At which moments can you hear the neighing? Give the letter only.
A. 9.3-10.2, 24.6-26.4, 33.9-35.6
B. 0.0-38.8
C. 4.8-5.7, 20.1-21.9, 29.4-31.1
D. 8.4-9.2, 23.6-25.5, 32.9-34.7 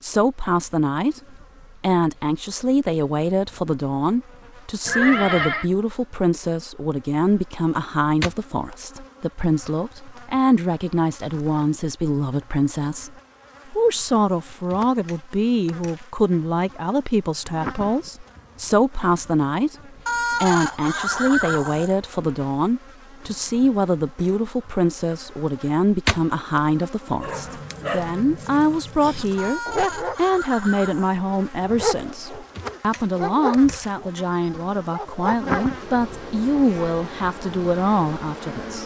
C.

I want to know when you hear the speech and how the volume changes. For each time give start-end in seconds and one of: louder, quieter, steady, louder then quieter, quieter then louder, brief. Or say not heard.
0.0-38.8 steady.